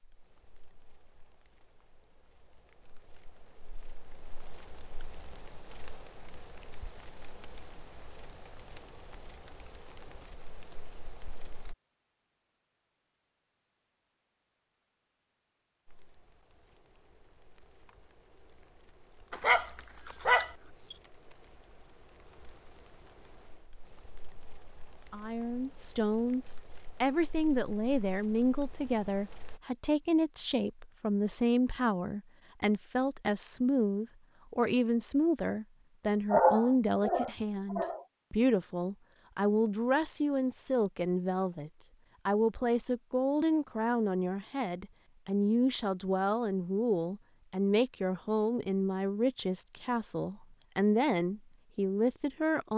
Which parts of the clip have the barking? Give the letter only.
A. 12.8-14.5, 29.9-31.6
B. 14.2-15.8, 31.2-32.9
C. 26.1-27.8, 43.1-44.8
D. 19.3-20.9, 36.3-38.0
D.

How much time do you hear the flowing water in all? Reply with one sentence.
The flowing water can't be heard in this clip.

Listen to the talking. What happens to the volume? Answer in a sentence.
The volume of the talking stays about the same.